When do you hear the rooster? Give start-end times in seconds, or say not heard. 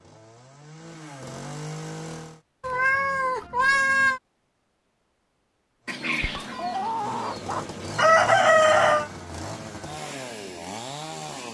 5.8-9.1.